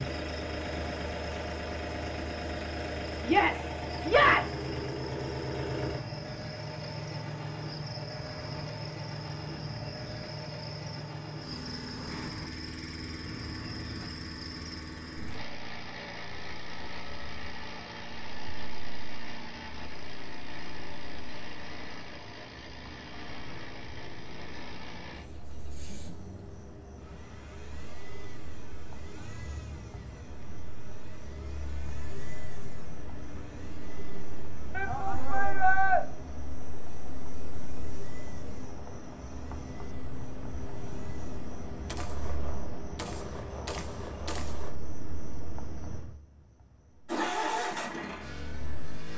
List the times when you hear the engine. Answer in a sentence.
You can hear the engine from 0.0 to 41.9 s and from 47.0 to 49.1 s.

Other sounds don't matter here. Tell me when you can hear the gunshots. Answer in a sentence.
The gunshots can be heard from 41.9 to 44.8 s.